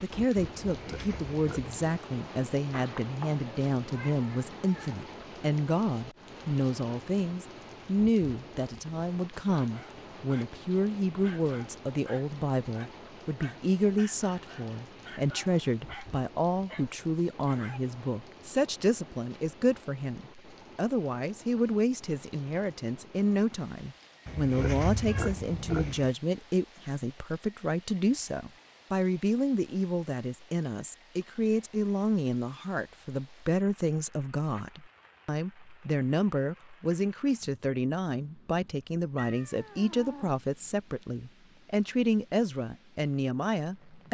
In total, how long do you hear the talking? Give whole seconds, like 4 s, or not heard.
44 s.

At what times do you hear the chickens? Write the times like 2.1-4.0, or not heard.
not heard.